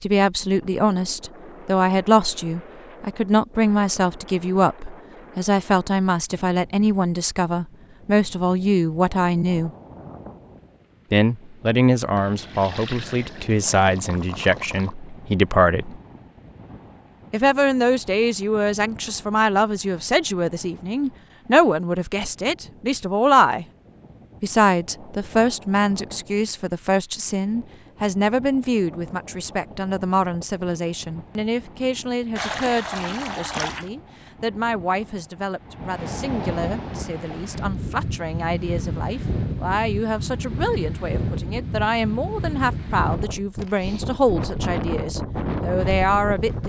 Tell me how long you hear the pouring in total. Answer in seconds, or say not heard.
4 s.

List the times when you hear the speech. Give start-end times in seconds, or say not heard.
0.0-9.7, 11.1-16.0, 17.3-23.6, 24.4-46.6.